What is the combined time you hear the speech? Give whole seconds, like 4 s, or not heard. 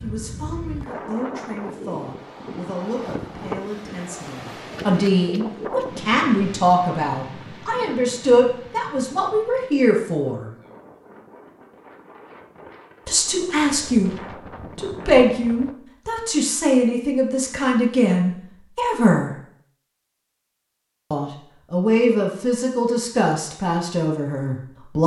20 s.